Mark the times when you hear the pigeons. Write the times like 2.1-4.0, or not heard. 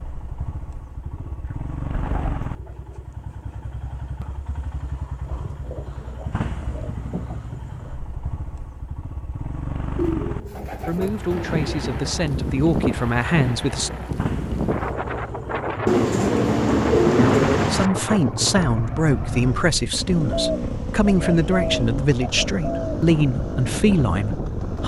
1.9-3.0, 5.2-8.0, 9.9-12.0, 15.8-17.9, 20.2-22.9.